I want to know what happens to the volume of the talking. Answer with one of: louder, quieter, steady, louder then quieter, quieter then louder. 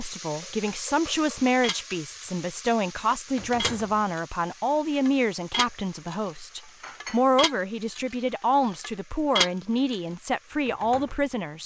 steady.